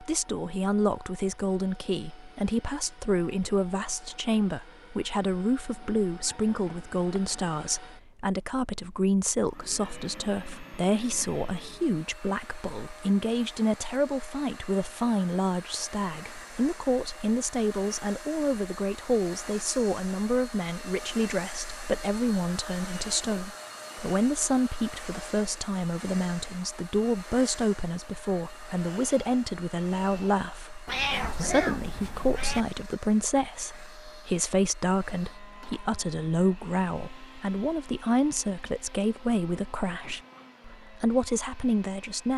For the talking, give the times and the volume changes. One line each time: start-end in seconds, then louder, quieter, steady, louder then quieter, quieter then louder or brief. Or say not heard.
0.0-42.3 steady.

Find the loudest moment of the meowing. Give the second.
31 s.